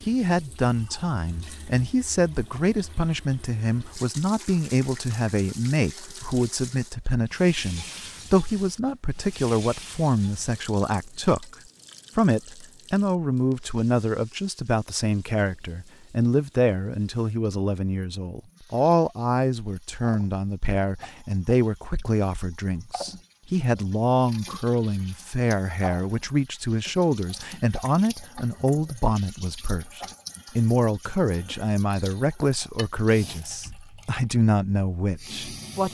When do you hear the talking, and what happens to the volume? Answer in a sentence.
You can hear the talking from 0.1 to 11.6 s, at a steady volume; and from 12.2 to 35.8 s, at a steady volume.